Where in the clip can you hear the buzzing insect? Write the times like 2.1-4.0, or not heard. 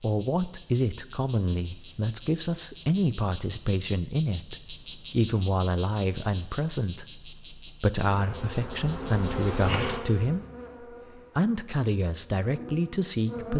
8.1-13.5.